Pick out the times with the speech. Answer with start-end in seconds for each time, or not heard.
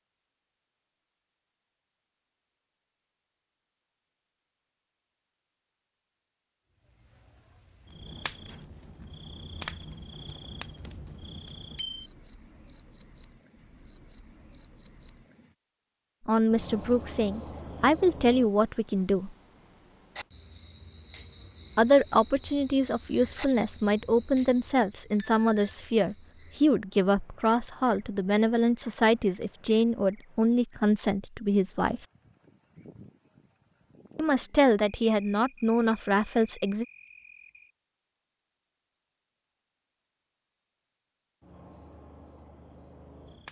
16.2-19.4, 21.8-32.0, 34.1-36.9.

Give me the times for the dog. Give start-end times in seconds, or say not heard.
not heard.